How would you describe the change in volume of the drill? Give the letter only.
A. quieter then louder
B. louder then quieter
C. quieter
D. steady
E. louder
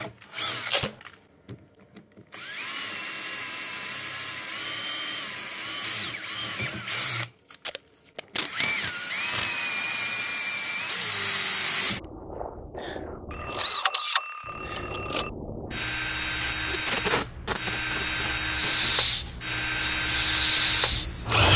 E.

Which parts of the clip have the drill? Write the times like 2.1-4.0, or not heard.
0.0-21.5.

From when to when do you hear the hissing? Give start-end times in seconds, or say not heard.
18.5-21.4.